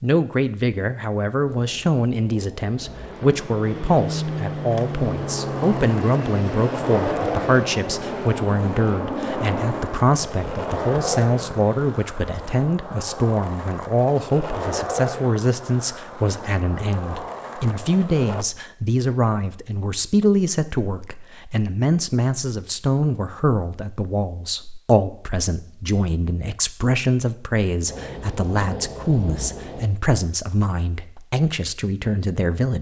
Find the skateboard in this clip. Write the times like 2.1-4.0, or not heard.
4.7-18.4.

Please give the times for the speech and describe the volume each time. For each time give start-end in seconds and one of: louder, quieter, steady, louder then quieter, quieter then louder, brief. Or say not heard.
0.0-32.7 steady.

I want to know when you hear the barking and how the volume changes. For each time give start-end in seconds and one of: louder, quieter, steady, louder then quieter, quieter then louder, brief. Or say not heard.
not heard.